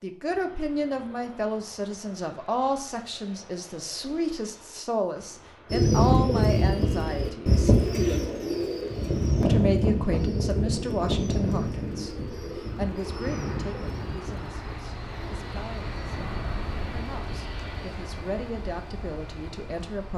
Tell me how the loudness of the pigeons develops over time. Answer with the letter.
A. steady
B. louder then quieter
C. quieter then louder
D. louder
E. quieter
E.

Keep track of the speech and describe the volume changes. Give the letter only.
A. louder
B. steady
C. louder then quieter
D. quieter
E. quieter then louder
D.